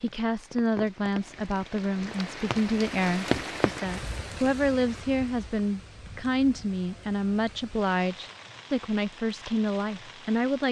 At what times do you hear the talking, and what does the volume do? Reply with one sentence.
The talking can be heard from 0.0 to 10.6 s, at a steady volume.